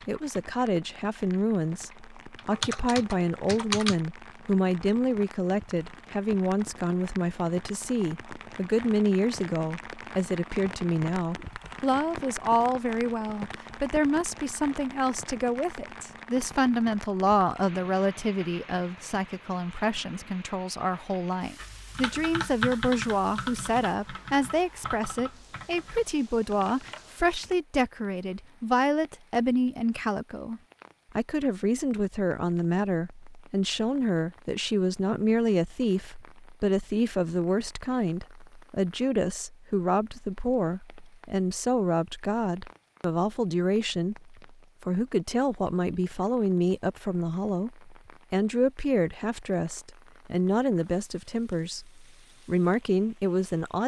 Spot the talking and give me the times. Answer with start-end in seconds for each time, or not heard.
0.1-53.8.